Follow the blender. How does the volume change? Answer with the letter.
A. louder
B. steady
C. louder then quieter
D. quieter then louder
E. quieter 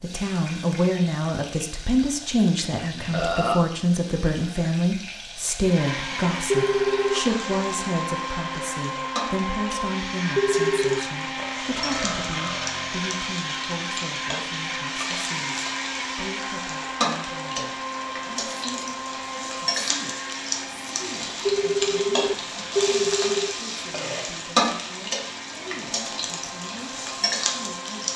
E.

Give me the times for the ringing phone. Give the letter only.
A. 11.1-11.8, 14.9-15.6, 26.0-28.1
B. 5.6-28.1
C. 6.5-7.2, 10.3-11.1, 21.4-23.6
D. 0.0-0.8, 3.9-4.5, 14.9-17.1
C.